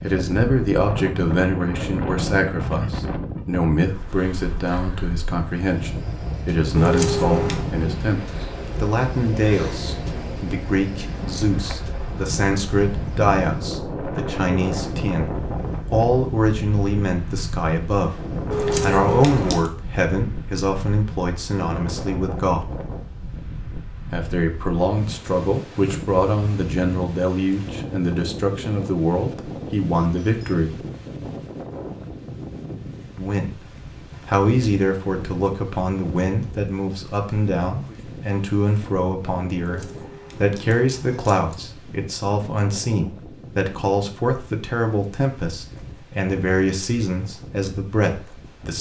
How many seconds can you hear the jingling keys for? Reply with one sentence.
The jingling keys can be heard for 4 seconds in total.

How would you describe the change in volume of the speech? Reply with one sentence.
The loudness of the speech stays about the same.